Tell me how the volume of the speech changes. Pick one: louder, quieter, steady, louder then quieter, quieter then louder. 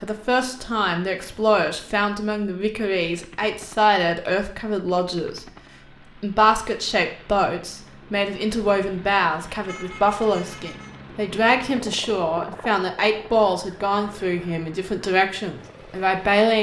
steady.